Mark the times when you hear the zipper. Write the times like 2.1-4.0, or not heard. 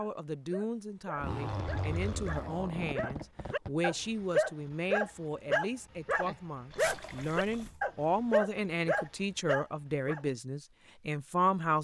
1.1-3.7, 6.8-7.8.